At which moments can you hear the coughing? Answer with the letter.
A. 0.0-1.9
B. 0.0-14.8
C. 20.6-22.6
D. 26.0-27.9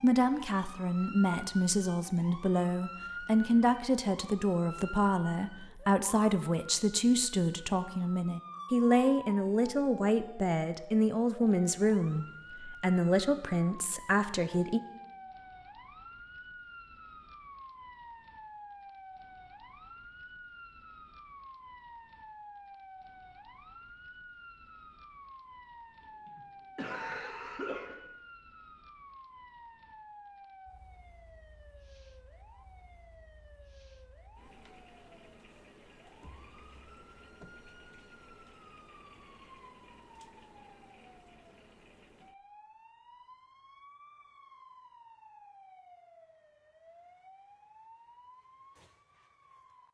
D.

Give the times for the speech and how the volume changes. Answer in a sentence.
You can hear the speech from 0.0 to 14.8 s, at a steady volume.